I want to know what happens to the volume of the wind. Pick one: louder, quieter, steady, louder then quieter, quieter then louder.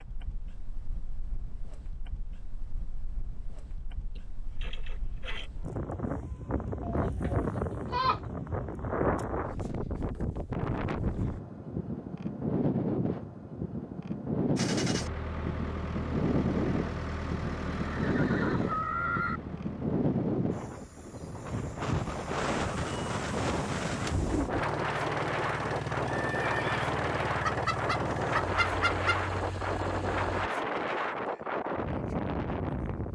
louder.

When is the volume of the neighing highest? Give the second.
19 s.